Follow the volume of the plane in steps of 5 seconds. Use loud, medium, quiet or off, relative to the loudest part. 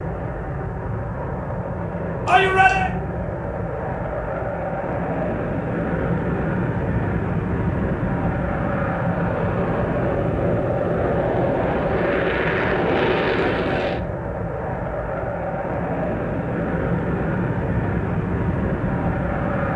medium, loud, loud, loud.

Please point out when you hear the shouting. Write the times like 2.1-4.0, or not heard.
2.2-2.9, 13.3-13.9.